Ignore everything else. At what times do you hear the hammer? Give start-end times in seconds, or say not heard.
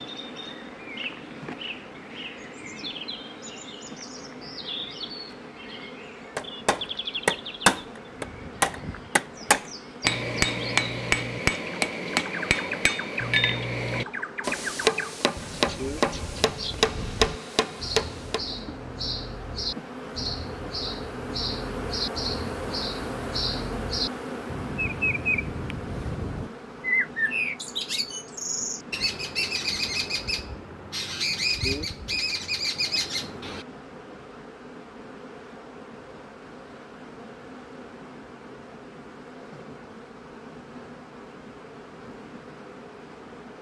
6.3-18.4.